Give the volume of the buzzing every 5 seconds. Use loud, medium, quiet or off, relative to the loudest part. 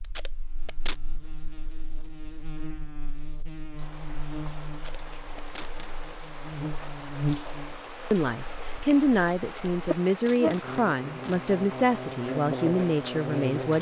medium, loud, loud.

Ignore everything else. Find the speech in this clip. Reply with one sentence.
You can hear the speech from 8.1 to 13.7 s.